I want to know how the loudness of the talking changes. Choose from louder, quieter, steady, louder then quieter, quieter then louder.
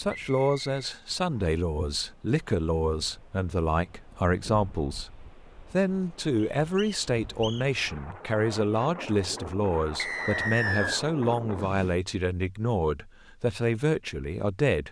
steady.